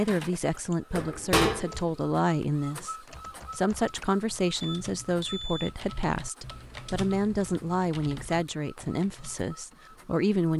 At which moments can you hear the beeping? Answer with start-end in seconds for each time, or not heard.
4.6-5.7.